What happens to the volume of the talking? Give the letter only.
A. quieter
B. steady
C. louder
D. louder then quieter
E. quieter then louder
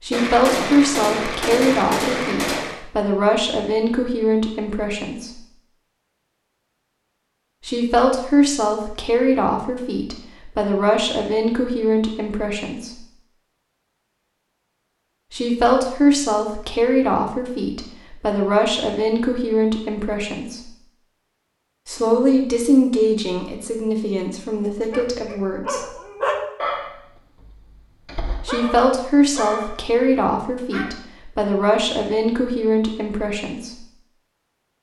B.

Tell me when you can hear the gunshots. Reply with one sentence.
The gunshots can be heard from 0.1 to 2.8 s.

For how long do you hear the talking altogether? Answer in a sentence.
The talking can be heard for 26 seconds in total.